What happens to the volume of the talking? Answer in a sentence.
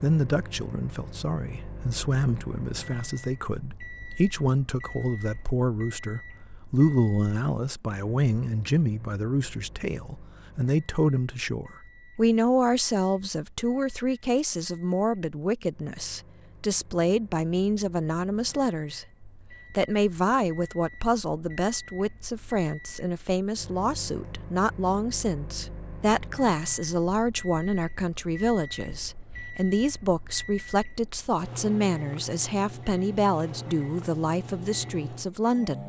The volume of the talking stays about the same.